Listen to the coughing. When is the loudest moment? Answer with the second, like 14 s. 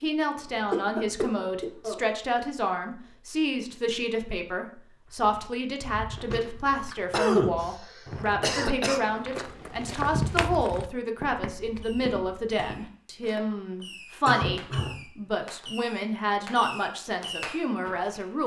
7 s.